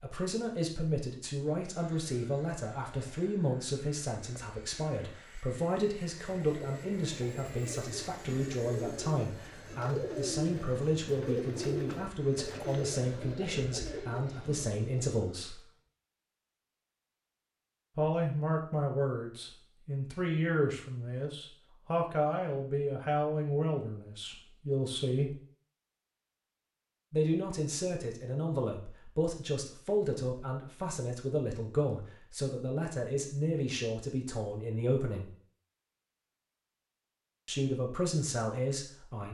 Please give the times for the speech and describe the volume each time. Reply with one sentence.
The speech can be heard from 0.0 to 15.6 s, at a steady volume; from 17.9 to 25.4 s, at a steady volume; from 27.1 to 35.3 s, at a steady volume; and briefly from 37.5 to 39.2 s.